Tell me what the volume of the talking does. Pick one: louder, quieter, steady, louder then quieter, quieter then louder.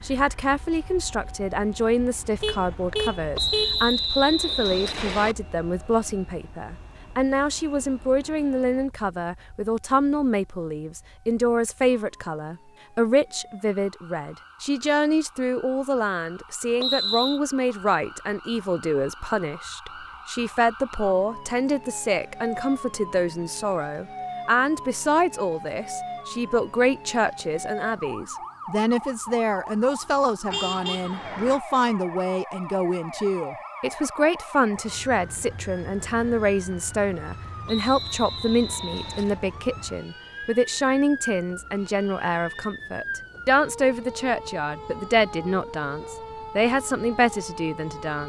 steady.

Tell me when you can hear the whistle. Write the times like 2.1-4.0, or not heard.
3.4-5.3, 16.8-17.4, 37.6-39.4.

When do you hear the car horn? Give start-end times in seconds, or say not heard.
2.4-4.0, 30.5-31.6.